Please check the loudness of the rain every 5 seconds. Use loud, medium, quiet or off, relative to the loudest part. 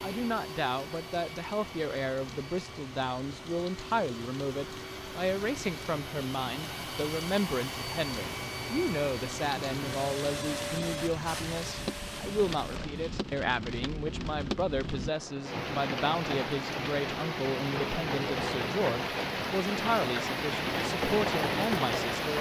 quiet, quiet, medium, loud, loud.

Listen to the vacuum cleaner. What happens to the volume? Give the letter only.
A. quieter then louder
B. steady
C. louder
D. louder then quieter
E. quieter
C.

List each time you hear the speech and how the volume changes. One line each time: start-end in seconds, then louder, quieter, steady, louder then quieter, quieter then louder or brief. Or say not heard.
0.0-22.3 steady.